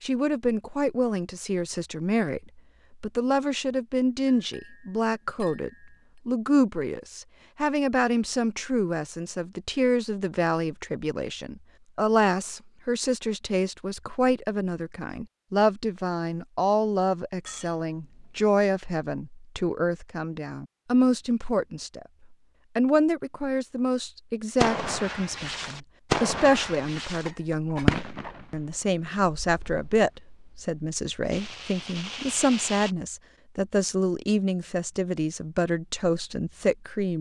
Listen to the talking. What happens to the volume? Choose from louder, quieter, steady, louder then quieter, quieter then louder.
steady.